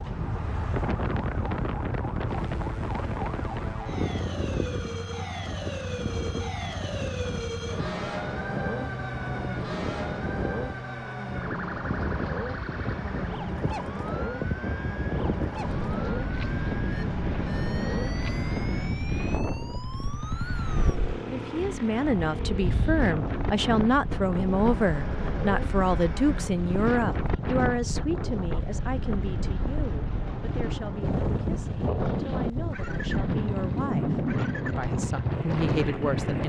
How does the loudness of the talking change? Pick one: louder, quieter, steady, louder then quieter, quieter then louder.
quieter then louder.